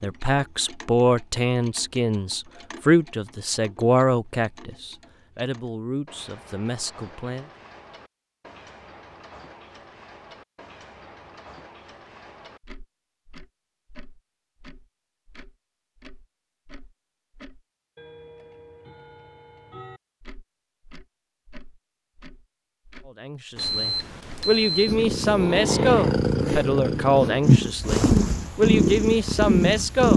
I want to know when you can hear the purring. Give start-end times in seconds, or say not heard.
24.9-30.1.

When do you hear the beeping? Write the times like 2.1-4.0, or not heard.
23.6-24.9.